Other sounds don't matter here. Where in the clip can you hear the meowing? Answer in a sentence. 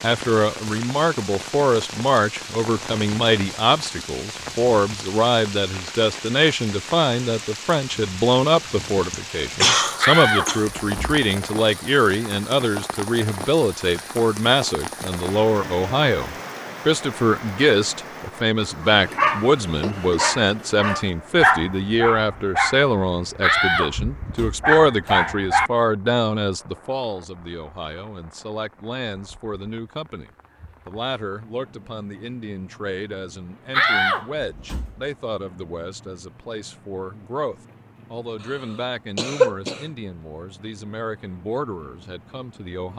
You can't hear the meowing here.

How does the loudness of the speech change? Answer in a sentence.
The loudness of the speech goes down.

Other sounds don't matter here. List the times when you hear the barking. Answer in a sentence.
The barking can be heard from 18.9 to 25.7 s.